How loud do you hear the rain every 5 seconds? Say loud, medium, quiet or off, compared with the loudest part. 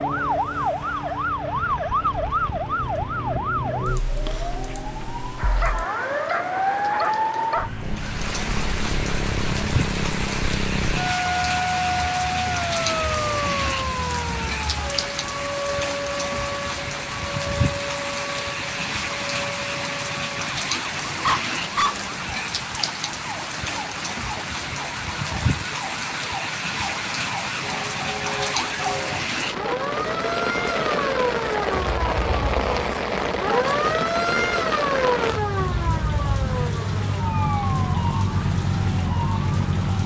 quiet, medium, loud, loud, loud, loud, loud, loud.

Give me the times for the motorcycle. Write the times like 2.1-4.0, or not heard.
not heard.